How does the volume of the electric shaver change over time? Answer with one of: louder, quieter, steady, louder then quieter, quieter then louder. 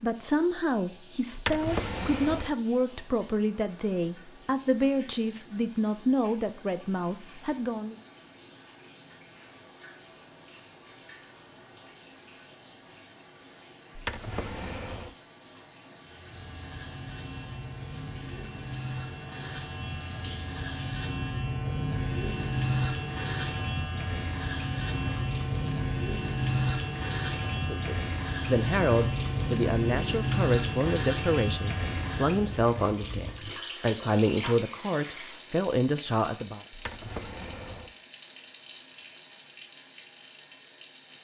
louder.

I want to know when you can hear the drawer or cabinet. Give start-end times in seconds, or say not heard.
1.3-2.5, 13.9-15.2, 36.7-37.9.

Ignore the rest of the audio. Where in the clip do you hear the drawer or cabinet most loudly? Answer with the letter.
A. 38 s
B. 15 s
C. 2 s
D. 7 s
C.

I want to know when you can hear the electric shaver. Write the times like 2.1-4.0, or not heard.
16.1-32.6.